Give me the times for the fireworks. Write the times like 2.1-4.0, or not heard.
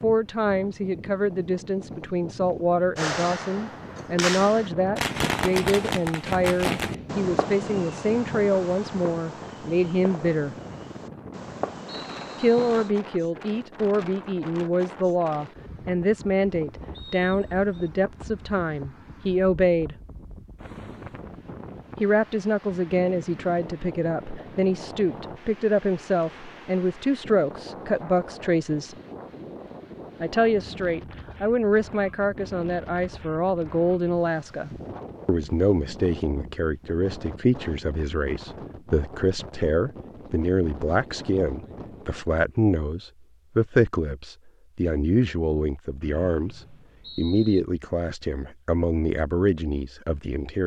3.0-12.9.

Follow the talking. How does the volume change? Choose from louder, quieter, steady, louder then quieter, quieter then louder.
steady.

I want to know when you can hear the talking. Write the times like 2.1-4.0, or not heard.
0.0-10.6, 12.4-19.9, 22.0-28.9, 30.2-50.6.